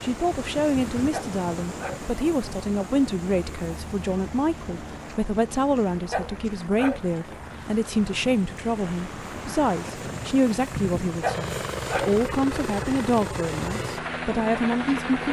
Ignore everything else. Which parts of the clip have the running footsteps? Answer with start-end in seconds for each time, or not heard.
not heard.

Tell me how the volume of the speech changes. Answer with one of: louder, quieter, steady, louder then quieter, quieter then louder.
steady.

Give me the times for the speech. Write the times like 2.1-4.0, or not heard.
0.0-15.2.